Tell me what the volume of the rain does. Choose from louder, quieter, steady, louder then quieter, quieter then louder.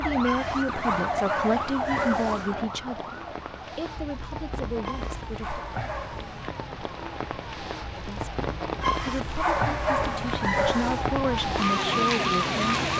louder.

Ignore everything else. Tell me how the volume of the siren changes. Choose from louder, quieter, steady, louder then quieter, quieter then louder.
quieter then louder.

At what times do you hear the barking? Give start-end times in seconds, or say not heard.
0.2-2.5, 4.8-6.5, 8.8-11.0.